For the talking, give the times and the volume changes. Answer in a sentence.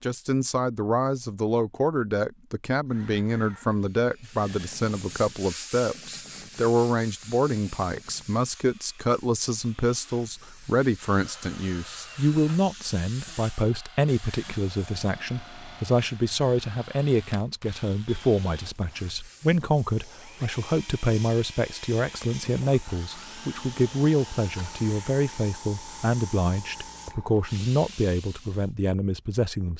You can hear the talking from 0.0 to 29.7 s, at a steady volume.